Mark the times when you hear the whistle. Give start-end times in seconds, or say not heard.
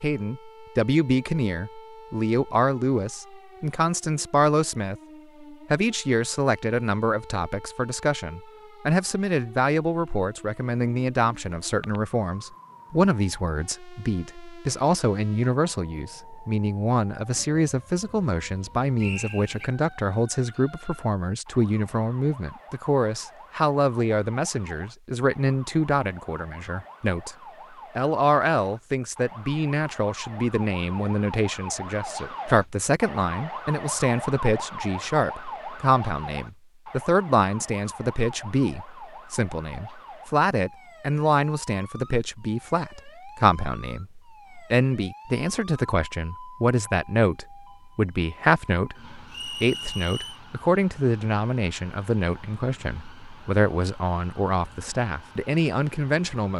19.0-19.7, 49.3-50.4.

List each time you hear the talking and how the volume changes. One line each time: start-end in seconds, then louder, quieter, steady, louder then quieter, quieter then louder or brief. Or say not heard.
0.0-27.4 steady
27.9-56.5 steady.